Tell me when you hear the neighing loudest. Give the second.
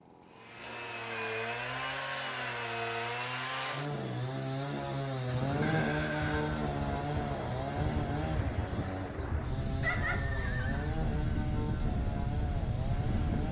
10 s.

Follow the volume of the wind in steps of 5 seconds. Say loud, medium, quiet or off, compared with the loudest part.
off, loud, loud.